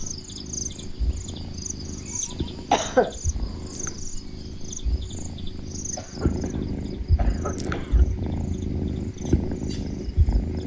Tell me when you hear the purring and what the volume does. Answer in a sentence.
You can hear the purring from 0.0 to 10.6 s, getting louder.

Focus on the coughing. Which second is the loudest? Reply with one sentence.
The volume of the coughing peaks at 3 seconds.